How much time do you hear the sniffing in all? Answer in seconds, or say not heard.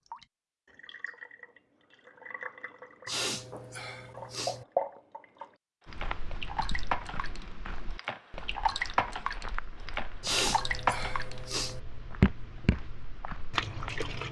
3 s.